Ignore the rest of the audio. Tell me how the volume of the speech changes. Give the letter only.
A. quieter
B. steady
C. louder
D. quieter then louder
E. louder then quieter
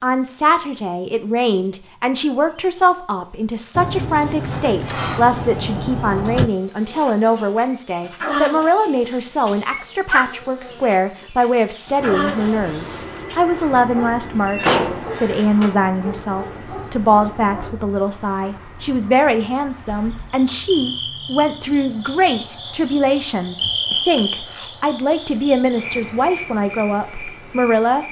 B.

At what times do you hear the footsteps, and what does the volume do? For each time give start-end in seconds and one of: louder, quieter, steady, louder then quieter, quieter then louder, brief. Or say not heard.
not heard.